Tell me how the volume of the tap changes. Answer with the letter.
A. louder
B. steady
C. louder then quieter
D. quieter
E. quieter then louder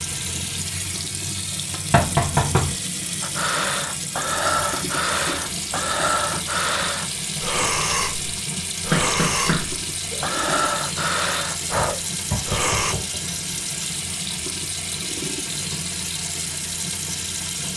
B.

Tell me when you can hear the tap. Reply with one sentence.
The tap can be heard from 0.0 to 17.7 s.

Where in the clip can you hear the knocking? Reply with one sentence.
You can hear the knocking from 1.9 to 2.7 s, from 8.9 to 10.2 s and from 12.2 to 13.2 s.